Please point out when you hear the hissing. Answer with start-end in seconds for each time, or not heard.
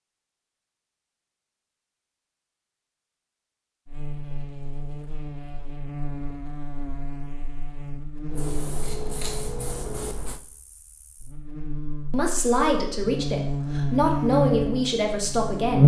8.3-10.4.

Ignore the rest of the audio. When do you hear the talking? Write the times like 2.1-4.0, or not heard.
12.1-15.8.